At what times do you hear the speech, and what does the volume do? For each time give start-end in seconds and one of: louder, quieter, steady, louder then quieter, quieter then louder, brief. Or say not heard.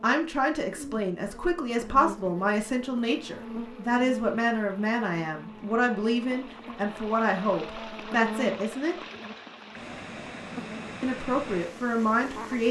0.0-8.9 steady
11.0-12.6 brief.